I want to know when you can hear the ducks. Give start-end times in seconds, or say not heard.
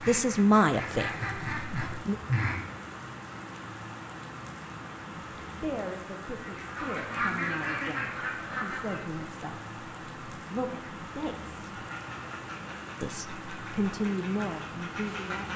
0.0-2.8, 6.4-9.1, 11.7-15.5.